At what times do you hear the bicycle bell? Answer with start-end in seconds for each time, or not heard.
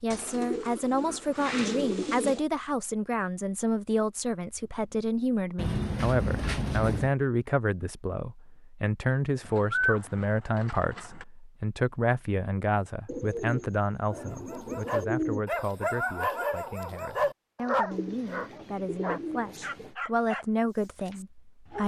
not heard.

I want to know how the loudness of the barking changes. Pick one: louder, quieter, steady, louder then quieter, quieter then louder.
quieter.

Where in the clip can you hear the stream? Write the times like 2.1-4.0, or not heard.
not heard.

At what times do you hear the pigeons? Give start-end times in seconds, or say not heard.
0.1-2.5, 5.5-7.1, 9.4-11.2, 13.1-15.4, 17.9-19.9.